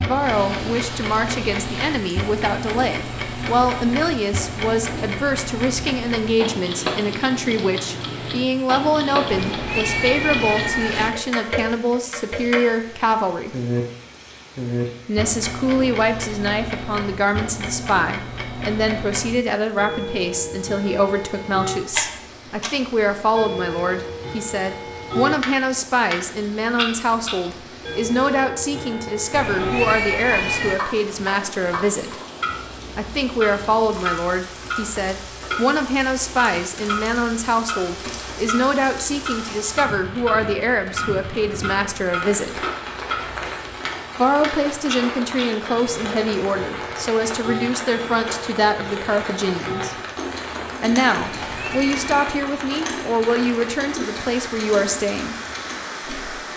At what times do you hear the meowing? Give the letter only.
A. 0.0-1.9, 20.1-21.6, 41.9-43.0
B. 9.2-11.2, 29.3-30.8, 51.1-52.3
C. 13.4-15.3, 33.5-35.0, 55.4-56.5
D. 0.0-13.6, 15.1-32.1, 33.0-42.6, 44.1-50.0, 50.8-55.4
B.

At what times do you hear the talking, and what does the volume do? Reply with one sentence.
The talking can be heard from 0.0 to 13.6 s, at a steady volume; from 15.1 to 32.1 s, at a steady volume; from 33.0 to 42.6 s, at a steady volume; from 44.1 to 50.0 s, at a steady volume; and from 50.8 to 55.4 s, at a steady volume.